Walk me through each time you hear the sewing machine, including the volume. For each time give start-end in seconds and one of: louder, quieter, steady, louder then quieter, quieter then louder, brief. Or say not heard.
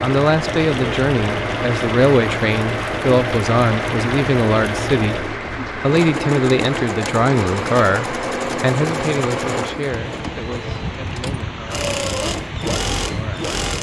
0.0-13.7 steady.